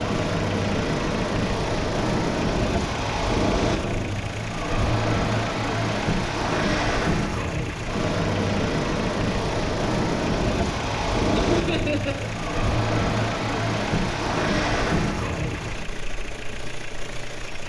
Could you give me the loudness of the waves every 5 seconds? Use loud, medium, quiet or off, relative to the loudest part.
loud, loud, loud, medium.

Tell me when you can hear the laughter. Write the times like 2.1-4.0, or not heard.
11.3-12.3.